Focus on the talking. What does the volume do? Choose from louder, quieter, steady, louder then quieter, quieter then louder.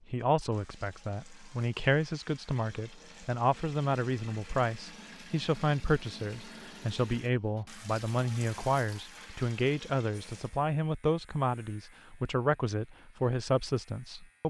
steady.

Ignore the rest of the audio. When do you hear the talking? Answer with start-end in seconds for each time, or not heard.
0.1-14.4.